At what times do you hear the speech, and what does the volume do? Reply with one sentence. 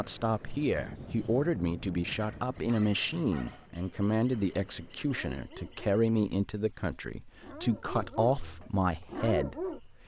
The speech can be heard from 0.0 to 10.0 s, at a steady volume.